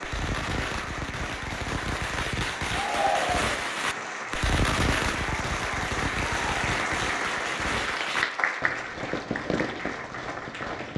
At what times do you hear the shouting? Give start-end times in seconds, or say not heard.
2.7-3.5.